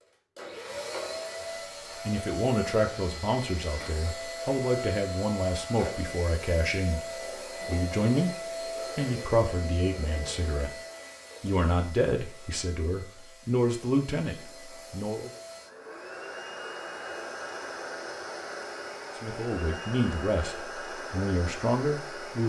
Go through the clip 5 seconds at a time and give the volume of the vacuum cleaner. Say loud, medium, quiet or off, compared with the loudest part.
loud, loud, medium, loud, loud.